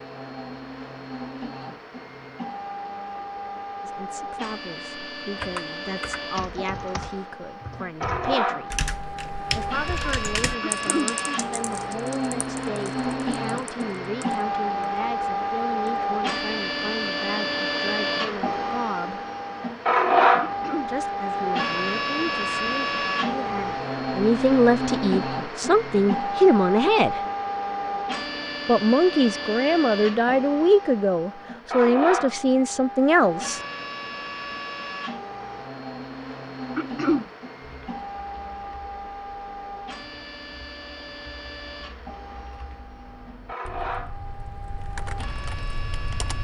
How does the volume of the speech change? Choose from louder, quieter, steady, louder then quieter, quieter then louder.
louder.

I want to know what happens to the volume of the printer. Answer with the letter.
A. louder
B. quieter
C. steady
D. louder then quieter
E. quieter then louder
D.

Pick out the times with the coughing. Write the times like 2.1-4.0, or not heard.
10.6-11.2, 20.4-20.9, 36.8-37.2.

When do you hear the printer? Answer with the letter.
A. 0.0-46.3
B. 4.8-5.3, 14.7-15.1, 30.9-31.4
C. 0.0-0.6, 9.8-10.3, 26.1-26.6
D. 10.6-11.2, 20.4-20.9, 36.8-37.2
A.